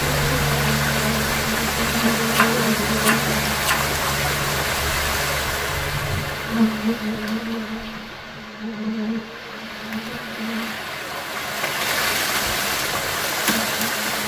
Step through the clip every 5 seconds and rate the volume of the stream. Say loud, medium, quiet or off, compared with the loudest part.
loud, medium, loud.